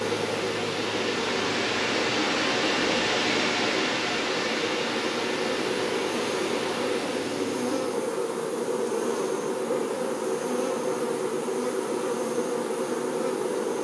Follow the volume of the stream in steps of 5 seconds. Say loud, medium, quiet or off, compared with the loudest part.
loud, medium, off.